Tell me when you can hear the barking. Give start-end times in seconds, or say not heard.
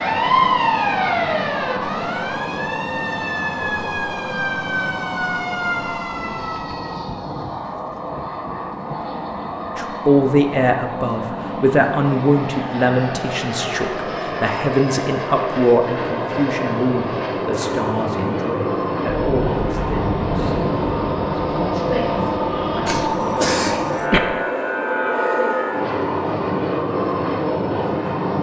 not heard.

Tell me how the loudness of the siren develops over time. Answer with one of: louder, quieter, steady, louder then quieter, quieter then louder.
quieter.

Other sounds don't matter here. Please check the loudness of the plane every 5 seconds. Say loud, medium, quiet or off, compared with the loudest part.
medium, medium, medium, loud, loud, loud.